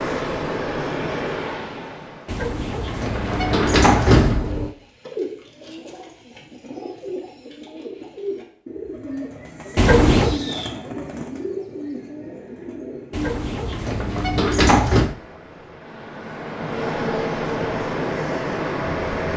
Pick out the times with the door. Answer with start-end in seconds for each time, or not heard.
2.2-4.8, 9.8-10.4, 13.1-15.2.